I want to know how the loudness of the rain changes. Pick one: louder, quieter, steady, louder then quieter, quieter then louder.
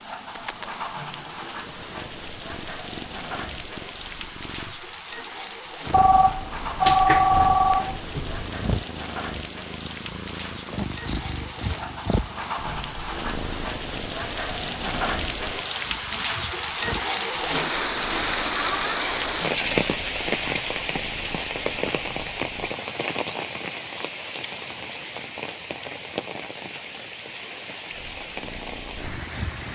louder then quieter.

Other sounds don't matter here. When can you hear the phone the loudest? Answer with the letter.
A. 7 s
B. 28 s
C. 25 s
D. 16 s
A.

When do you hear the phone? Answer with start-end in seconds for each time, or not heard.
5.9-8.4.